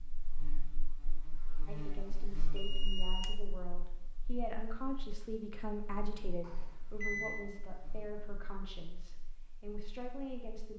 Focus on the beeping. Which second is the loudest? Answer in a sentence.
The volume of the beeping peaks at 7 seconds.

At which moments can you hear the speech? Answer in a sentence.
You can hear the speech from 1.6 to 10.7 s.